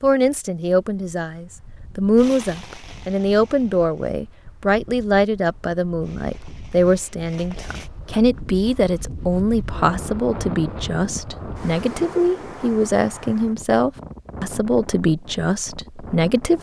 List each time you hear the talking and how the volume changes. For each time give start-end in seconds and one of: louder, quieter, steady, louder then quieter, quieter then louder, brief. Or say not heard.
0.0-16.5 steady.